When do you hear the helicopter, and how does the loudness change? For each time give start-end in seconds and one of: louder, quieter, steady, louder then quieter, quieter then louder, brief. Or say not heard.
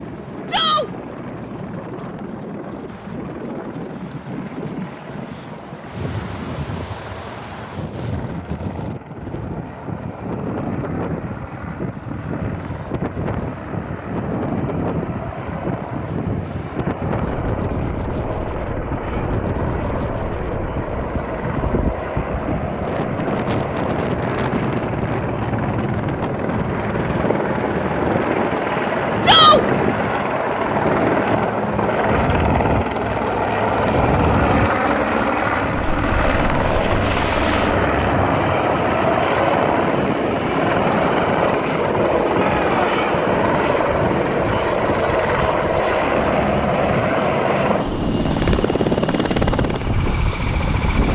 0.0-51.0 louder.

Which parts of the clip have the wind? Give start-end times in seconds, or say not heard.
0.0-51.0.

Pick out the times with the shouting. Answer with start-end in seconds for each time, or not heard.
0.5-0.9, 29.2-29.6, 42.3-43.0.